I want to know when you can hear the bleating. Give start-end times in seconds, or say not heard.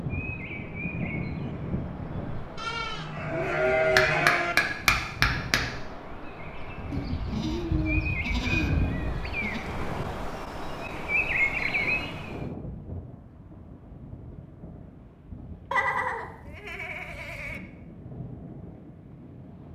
2.5-4.5, 6.9-9.7, 15.7-17.6.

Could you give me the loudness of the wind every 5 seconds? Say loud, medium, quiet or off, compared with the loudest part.
loud, loud, medium, medium.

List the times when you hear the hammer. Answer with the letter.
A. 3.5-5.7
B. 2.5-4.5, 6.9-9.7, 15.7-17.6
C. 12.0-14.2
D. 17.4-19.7
A.